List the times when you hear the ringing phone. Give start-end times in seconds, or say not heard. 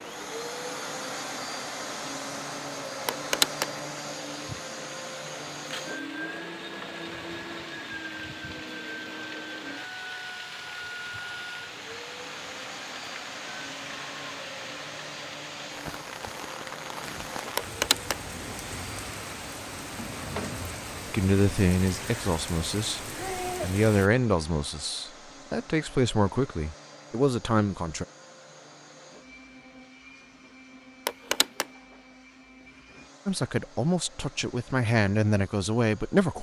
3.0-3.6, 17.6-18.1, 31.1-31.6.